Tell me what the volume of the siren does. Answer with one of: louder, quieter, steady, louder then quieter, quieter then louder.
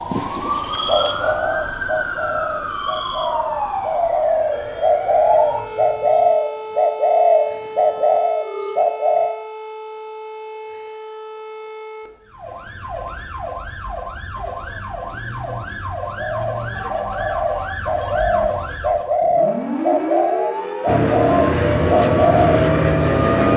quieter then louder.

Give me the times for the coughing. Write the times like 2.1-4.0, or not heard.
not heard.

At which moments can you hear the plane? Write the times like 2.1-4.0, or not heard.
20.9-23.5.